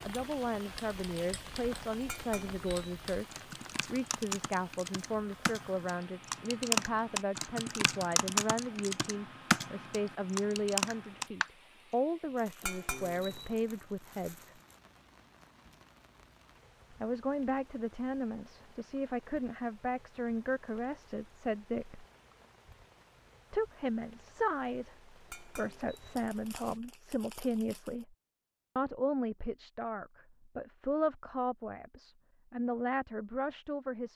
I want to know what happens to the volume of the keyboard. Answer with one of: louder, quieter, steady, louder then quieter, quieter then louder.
louder.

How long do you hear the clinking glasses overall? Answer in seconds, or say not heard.
3 s.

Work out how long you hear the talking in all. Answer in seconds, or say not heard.
30 s.